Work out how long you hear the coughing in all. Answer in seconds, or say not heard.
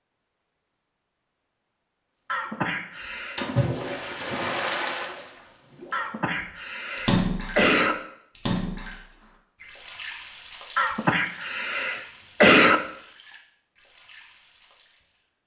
5 s.